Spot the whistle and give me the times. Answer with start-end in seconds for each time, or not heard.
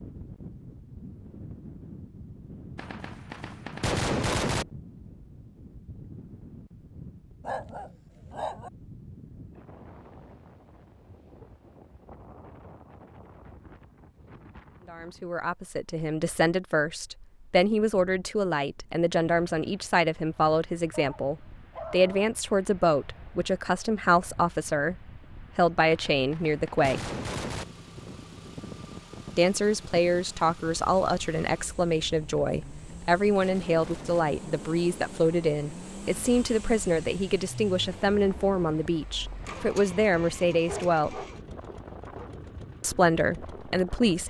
not heard.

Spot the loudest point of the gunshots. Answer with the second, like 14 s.
4 s.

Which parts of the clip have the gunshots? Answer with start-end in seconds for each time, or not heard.
2.8-4.7, 25.8-27.6, 32.4-34.2.